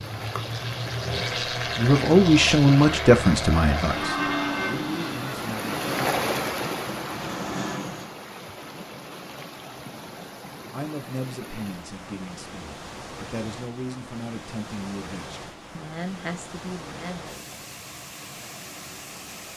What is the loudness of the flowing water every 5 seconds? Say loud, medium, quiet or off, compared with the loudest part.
medium, loud, medium, medium.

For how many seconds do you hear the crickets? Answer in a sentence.
You can't hear the crickets here.